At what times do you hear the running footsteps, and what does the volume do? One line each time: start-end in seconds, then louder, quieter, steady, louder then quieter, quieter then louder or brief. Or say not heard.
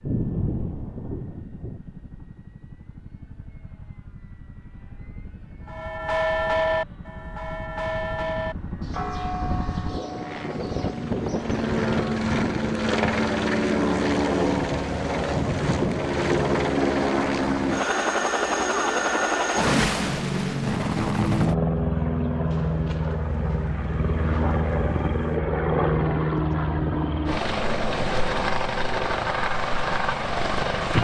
not heard.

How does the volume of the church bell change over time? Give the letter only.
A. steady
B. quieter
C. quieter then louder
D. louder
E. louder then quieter
B.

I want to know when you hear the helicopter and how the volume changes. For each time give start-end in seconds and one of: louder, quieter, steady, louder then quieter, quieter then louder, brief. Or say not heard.
0.0-30.9 louder.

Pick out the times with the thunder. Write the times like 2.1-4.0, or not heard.
0.1-1.8, 22.5-25.4.